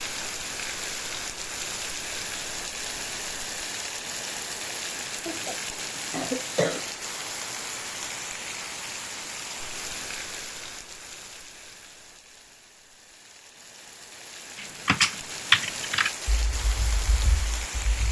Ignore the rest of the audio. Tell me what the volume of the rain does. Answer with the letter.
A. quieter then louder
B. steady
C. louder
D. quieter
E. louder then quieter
A.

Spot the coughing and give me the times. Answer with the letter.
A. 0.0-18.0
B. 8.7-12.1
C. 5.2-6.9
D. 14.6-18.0
C.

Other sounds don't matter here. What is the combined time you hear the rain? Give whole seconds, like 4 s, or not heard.
18 s.